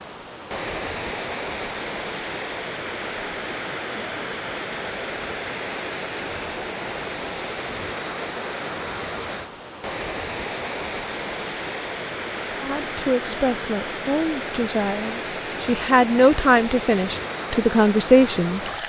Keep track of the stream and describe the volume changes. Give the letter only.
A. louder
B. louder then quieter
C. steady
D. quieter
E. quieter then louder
C.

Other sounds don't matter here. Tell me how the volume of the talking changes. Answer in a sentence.
The volume of the talking goes up.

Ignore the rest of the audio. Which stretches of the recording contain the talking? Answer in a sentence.
The talking can be heard from 12.6 to 18.8 s.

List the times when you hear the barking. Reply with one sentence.
The barking can't be heard in this clip.